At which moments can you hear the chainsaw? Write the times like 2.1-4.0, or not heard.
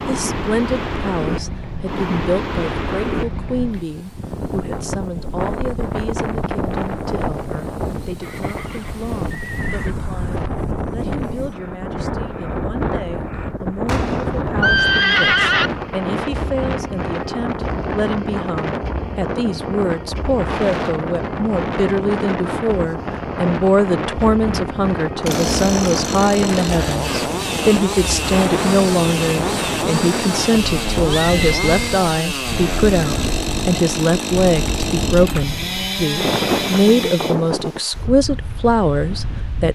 25.2-37.4.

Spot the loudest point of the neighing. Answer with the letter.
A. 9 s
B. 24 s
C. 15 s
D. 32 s
C.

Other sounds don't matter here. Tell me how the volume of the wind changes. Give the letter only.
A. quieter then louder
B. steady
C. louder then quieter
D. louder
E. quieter
B.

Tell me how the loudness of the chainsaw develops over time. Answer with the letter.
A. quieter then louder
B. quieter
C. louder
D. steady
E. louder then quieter
D.